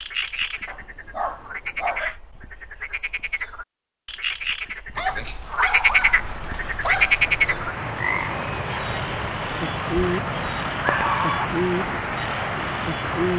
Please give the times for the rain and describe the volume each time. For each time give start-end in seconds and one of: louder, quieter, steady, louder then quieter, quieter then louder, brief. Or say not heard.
5.7-13.3 louder.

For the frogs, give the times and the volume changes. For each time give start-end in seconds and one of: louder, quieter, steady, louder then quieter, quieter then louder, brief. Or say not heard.
0.0-13.3 louder then quieter.